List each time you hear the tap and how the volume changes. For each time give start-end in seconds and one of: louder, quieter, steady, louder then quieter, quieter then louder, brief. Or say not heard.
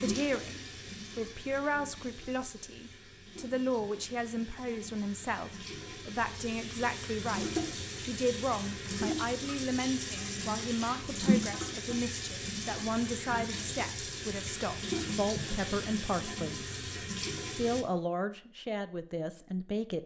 0.0-17.9 louder.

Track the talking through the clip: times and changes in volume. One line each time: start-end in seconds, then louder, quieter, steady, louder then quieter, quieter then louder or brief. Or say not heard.
0.0-16.7 steady
17.5-20.0 brief.